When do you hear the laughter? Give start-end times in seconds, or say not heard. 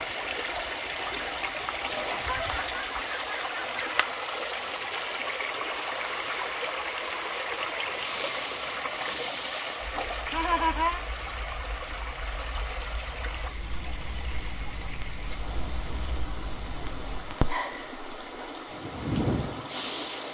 1.9-4.0, 10.3-11.0, 17.4-17.9.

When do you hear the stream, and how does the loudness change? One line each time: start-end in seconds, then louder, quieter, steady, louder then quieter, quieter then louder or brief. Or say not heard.
0.0-20.2 quieter.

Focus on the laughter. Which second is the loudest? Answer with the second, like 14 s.
11 s.